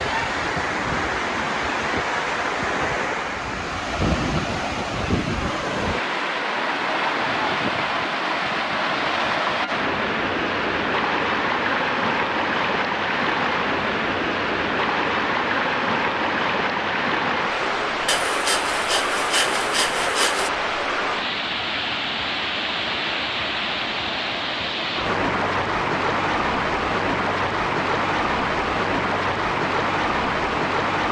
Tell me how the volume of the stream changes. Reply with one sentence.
The volume of the stream stays about the same.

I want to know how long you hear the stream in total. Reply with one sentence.
You can hear the stream for 31 seconds altogether.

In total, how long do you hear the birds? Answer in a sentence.
You can't hear the birds here.